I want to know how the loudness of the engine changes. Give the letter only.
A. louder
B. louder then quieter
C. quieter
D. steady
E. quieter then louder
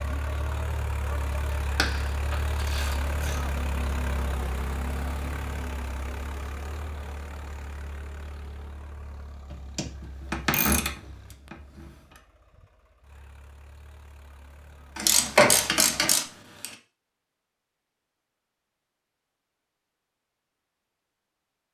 C.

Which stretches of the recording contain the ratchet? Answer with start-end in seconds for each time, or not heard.
1.8-3.5, 9.5-11.9, 14.9-16.6.